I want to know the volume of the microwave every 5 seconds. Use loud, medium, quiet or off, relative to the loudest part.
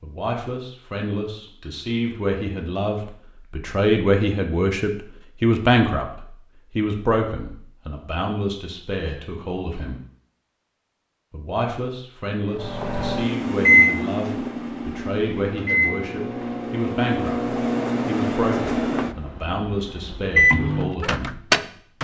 off, off, loud, medium, loud.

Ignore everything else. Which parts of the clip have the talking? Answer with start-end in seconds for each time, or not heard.
0.0-6.0, 6.7-10.0, 11.3-21.3.